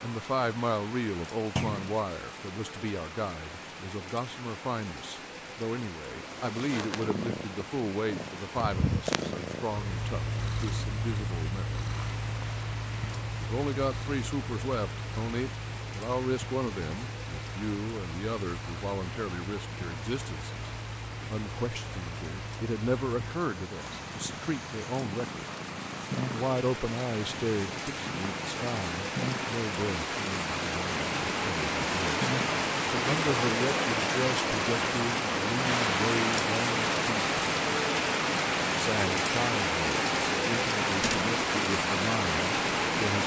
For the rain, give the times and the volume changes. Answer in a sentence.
You can hear the rain from 0.0 to 43.2 s, getting louder.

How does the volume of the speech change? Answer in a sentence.
The loudness of the speech stays about the same.